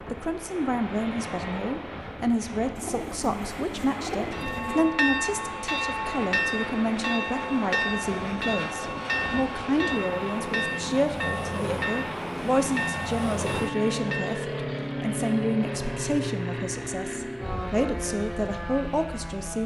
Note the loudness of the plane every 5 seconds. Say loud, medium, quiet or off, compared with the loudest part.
medium, loud, loud, loud.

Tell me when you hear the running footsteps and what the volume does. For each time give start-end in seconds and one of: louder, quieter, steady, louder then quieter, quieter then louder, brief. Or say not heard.
not heard.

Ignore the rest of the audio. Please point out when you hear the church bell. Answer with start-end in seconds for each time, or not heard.
4.3-14.5.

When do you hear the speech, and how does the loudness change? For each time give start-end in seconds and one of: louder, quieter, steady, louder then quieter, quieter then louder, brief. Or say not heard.
0.1-19.6 steady.